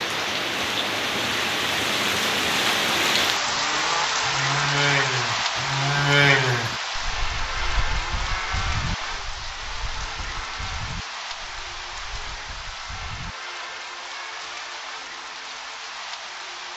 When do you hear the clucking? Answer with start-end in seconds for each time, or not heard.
not heard.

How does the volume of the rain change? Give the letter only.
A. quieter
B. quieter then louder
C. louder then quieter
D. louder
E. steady
A.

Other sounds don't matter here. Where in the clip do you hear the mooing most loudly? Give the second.
6 s.